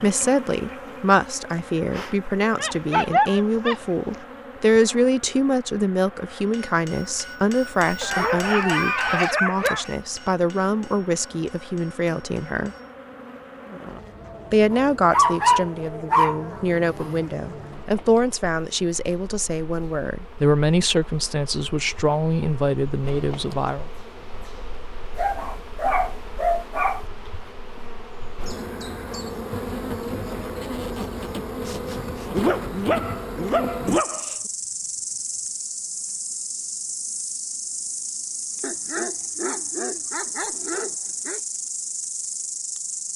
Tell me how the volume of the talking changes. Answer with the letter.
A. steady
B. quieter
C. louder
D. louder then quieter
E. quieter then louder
A.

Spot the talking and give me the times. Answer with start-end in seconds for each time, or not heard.
0.0-12.8, 14.5-23.9.